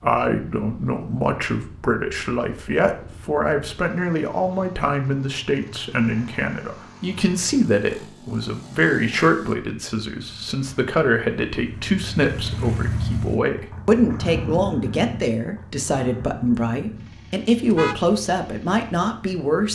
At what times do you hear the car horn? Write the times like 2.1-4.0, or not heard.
17.6-18.1.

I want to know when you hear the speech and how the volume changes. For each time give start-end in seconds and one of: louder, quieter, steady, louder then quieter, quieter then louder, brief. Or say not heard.
0.0-19.7 steady.